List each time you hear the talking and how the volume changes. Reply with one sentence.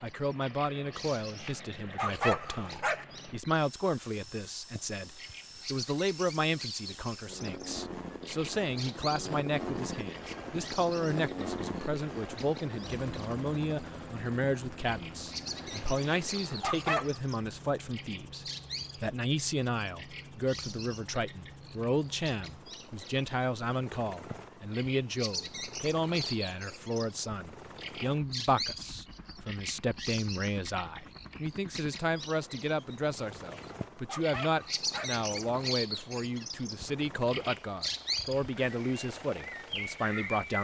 You can hear the talking from 0.0 to 40.5 s, at a steady volume.